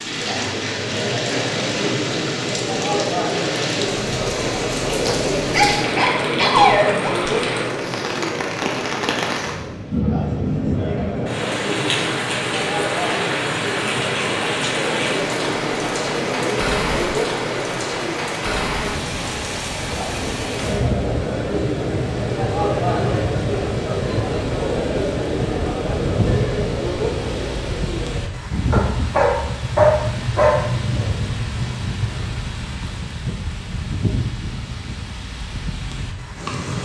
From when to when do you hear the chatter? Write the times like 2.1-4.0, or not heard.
0.0-28.2.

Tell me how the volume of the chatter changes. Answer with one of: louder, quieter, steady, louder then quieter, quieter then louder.
steady.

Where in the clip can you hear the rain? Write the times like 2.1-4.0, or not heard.
0.0-36.8.